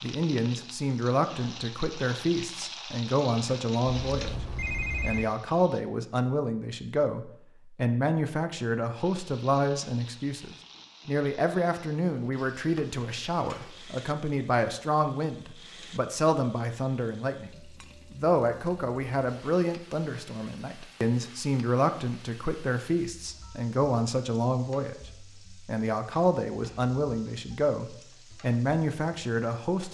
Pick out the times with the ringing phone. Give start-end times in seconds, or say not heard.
4.0-5.3.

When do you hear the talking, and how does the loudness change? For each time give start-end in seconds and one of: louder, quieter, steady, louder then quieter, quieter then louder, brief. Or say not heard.
0.0-29.8 steady.